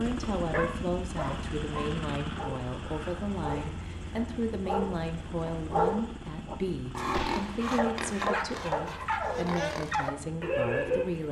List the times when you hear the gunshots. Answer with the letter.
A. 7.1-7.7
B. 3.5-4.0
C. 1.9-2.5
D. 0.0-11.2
A.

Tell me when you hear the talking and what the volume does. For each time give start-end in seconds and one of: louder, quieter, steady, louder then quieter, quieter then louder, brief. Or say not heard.
0.0-11.2 steady.